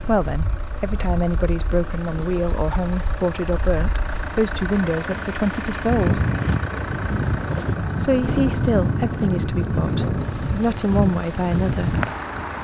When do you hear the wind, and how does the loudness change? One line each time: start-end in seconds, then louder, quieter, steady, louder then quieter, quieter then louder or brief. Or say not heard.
0.0-12.5 louder.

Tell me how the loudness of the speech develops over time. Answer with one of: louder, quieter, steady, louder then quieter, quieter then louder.
steady.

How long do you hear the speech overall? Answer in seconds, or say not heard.
10 s.